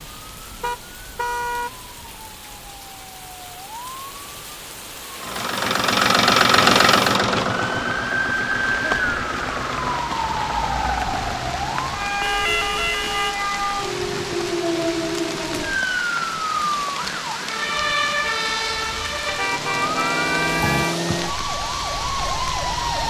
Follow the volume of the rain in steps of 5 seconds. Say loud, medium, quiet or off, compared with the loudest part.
medium, loud, loud, loud, loud.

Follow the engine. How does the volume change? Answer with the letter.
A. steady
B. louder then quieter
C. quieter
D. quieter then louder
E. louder
C.